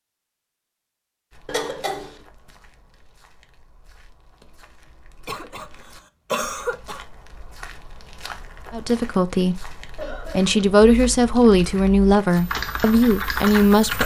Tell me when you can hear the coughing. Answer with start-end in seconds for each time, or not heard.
1.4-2.1, 5.2-5.7, 6.3-7.0, 9.9-10.6.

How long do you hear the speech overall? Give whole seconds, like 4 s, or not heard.
5 s.